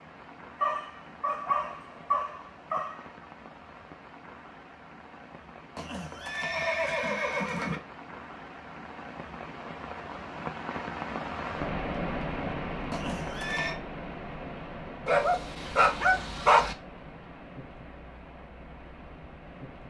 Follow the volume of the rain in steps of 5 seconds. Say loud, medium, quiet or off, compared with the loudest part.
quiet, medium, loud, medium.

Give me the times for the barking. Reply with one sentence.
The barking can be heard from 0.6 to 3.0 s and from 15.1 to 16.8 s.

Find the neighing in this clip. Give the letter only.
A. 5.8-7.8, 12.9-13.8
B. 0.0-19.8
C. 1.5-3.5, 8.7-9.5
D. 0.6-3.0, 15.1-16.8
A.